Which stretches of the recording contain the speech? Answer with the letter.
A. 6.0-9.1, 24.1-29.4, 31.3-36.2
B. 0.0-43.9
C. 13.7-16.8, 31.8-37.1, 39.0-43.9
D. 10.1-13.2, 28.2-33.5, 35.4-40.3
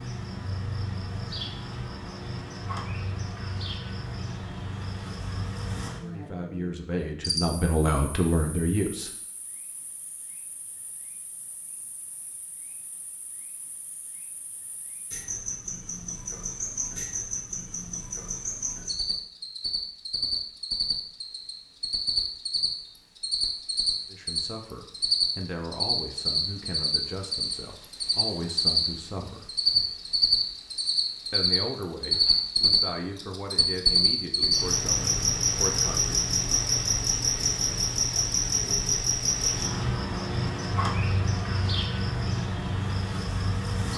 A.